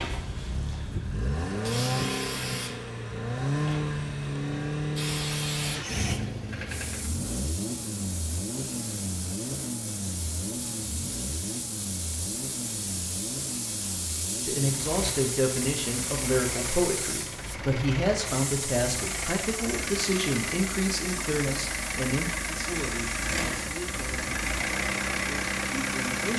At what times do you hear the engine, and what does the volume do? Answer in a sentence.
You can hear the engine from 0.0 to 26.3 s, getting quieter then louder.